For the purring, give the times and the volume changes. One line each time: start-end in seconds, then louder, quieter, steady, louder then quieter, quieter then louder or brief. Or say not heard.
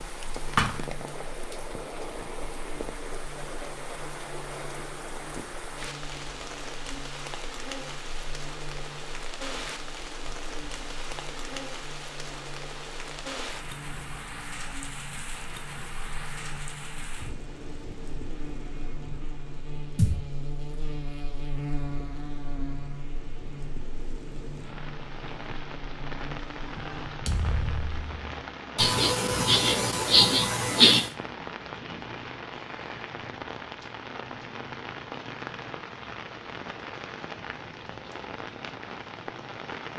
not heard.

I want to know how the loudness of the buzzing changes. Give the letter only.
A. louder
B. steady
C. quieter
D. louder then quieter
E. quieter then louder
A.